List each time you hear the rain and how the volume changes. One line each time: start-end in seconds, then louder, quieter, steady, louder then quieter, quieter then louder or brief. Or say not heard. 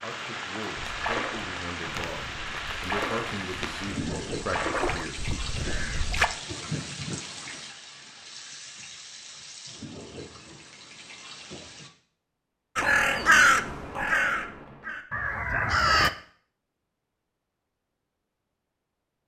0.0-11.9 quieter.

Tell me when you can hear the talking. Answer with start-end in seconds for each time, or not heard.
0.0-5.2.